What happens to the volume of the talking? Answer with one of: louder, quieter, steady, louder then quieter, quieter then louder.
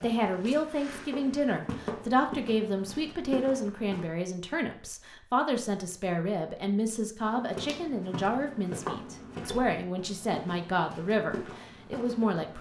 steady.